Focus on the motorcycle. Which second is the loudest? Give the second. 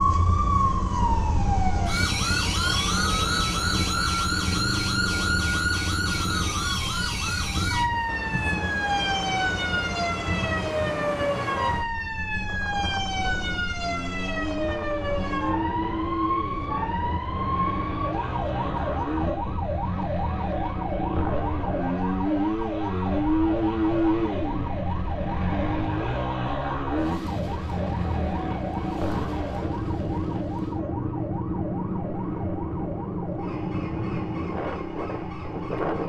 24 s.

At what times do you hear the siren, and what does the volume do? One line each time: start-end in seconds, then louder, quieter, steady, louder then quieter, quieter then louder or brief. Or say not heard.
0.0-36.0 quieter.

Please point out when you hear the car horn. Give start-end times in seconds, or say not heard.
not heard.